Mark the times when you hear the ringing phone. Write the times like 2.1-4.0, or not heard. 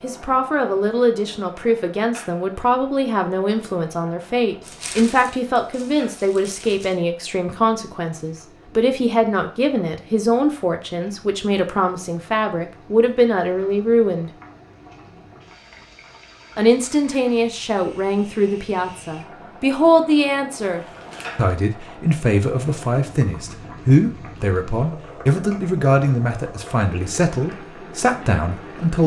not heard.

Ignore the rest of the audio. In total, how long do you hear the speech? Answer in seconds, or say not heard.
27 s.